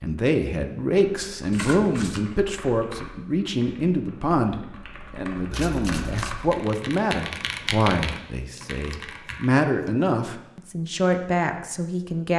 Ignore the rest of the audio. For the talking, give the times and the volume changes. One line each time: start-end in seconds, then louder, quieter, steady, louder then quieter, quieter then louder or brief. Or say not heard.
0.0-12.3 steady.